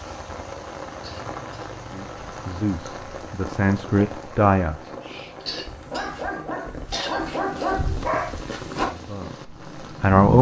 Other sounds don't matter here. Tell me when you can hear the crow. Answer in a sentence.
The crow can't be heard in this clip.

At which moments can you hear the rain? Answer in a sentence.
You can hear the rain from 0.0 to 10.3 s.